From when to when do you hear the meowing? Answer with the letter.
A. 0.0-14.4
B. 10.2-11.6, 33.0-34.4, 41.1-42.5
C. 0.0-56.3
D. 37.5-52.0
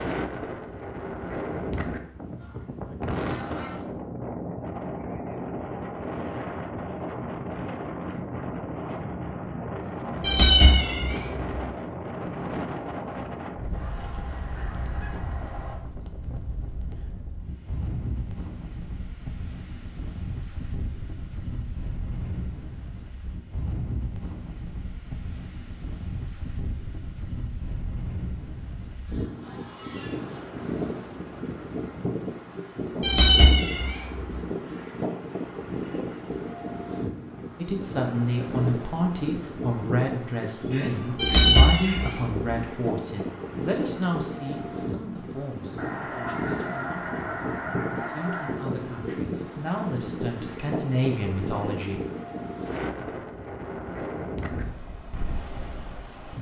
B.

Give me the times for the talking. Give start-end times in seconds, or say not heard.
37.5-52.0.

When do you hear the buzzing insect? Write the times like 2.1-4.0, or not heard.
not heard.